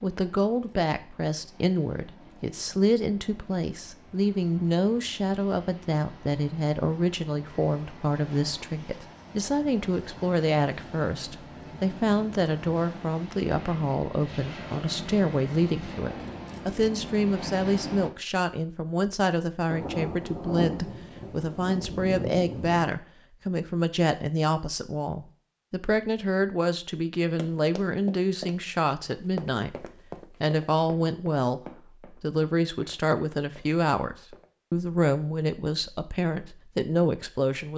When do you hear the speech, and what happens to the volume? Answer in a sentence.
The speech can be heard from 0.0 to 37.7 s, at a steady volume.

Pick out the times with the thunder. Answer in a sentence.
You can hear the thunder from 19.7 to 22.9 s.